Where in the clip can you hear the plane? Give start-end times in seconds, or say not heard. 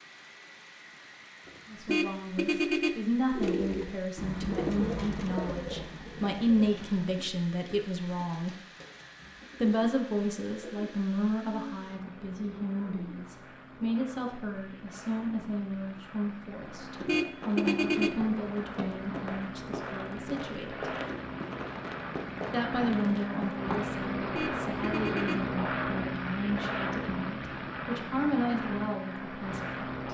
0.0-30.1.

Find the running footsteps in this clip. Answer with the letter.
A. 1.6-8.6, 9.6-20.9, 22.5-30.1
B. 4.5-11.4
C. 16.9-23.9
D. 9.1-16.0
C.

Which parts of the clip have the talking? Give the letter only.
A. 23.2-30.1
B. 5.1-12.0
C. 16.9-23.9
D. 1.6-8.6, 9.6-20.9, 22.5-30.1
D.